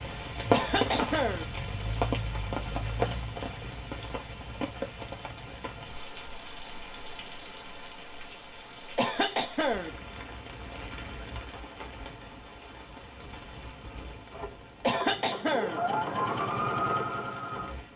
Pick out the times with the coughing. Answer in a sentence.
You can hear the coughing from 0.5 to 1.4 s, from 8.9 to 9.9 s and from 14.8 to 15.8 s.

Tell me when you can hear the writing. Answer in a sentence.
You can't hear the writing here.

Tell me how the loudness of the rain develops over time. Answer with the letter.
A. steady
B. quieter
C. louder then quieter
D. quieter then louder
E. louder
B.